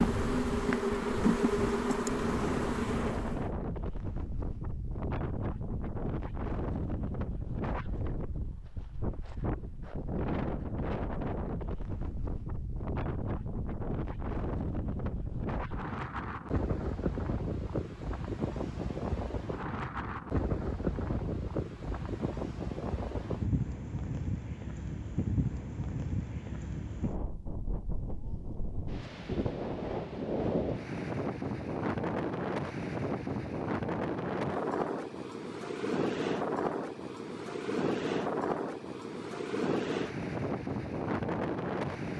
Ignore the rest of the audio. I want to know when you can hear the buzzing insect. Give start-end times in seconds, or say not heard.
0.0-3.5.